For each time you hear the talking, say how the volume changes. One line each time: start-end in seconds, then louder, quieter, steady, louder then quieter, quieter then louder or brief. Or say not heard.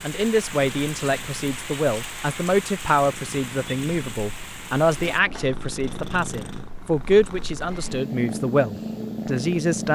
0.0-9.9 steady.